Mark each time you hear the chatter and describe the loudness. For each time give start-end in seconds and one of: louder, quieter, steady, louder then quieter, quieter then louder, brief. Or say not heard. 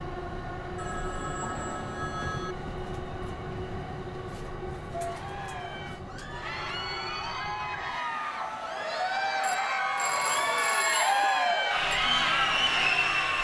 4.9-13.4 louder.